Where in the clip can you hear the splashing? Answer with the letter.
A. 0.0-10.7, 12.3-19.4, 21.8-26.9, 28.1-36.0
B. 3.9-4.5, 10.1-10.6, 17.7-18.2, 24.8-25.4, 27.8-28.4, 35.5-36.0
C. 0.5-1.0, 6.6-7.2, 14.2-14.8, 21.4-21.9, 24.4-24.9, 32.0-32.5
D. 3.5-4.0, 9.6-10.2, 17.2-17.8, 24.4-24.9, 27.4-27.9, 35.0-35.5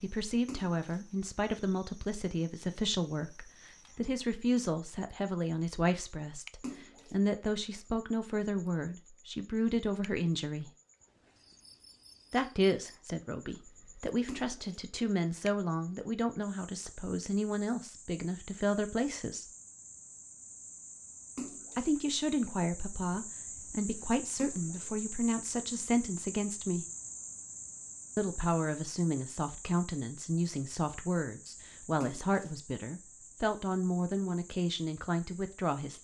C.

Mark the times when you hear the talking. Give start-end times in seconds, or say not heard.
0.0-10.7, 12.3-19.4, 21.8-26.9, 28.1-36.0.